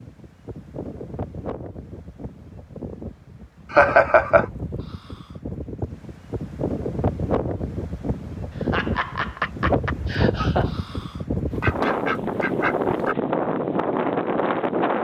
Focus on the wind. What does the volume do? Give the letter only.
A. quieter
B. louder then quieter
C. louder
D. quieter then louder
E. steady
C.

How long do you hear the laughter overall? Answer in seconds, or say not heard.
3 s.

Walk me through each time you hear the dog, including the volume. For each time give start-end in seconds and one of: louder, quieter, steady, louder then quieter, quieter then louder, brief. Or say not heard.
not heard.